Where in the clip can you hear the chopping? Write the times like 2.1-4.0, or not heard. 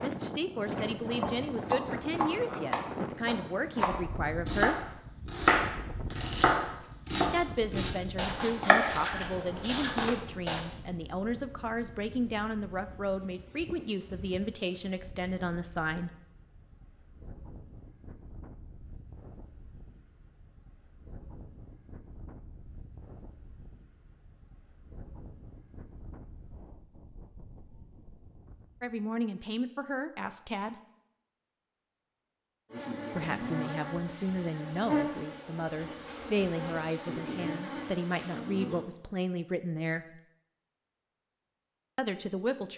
0.8-10.6.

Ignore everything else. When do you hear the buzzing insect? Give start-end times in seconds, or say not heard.
32.7-38.9.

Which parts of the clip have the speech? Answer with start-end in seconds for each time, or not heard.
0.0-4.8, 7.3-16.1, 28.8-30.8, 33.1-40.2, 42.0-42.7.